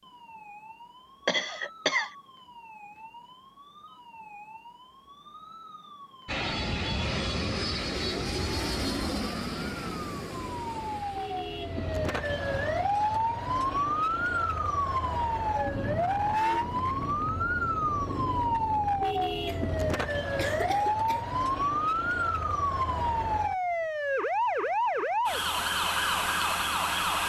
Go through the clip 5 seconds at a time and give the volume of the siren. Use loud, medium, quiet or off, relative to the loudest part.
quiet, quiet, loud, loud, loud, loud.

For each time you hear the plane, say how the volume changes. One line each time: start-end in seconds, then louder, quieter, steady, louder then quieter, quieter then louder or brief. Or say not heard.
6.2-13.2 quieter.